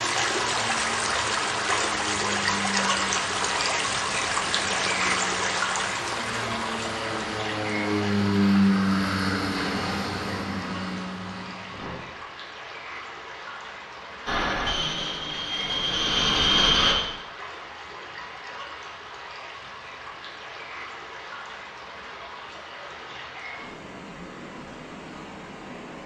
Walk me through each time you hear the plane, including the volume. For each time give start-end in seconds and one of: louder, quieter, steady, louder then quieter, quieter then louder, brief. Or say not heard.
0.0-12.0 louder then quieter
14.2-16.9 brief.